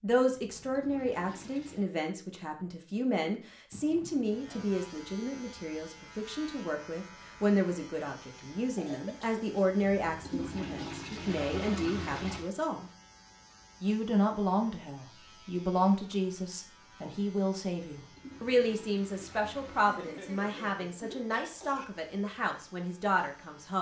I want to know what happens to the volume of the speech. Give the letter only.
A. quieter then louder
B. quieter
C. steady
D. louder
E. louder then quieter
C.